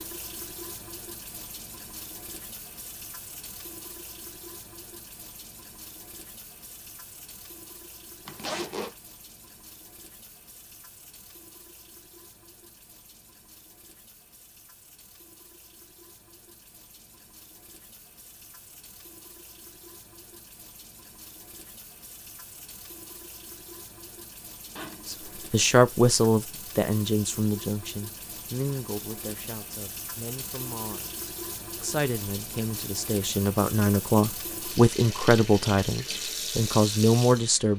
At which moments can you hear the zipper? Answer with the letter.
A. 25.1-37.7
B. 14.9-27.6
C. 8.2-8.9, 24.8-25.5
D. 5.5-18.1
C.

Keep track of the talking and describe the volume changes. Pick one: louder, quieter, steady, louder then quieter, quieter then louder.
quieter then louder.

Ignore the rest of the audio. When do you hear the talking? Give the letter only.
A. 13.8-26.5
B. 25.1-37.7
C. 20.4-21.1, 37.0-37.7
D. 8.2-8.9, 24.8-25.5
B.